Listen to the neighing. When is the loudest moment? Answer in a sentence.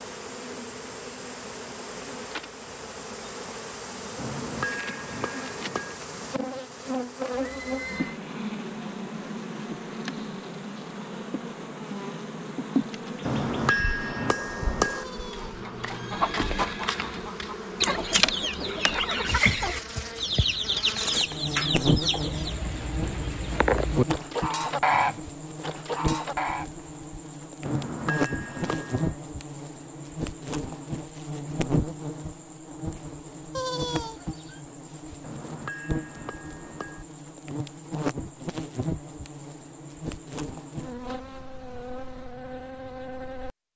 The volume of the neighing peaks at 34 seconds.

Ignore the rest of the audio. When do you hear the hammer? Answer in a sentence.
You can hear the hammer from 4.2 to 6.0 s, from 13.2 to 15.1 s, from 27.6 to 29.2 s and from 35.2 to 37.0 s.